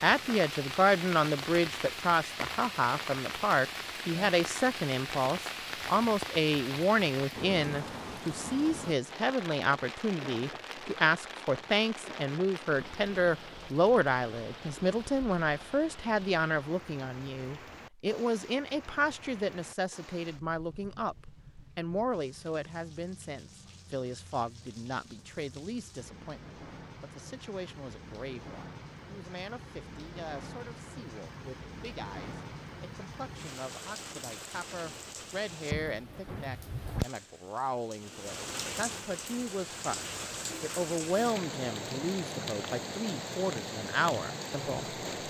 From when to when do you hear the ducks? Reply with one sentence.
You can't hear the ducks here.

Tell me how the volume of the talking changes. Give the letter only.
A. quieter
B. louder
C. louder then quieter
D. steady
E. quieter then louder
E.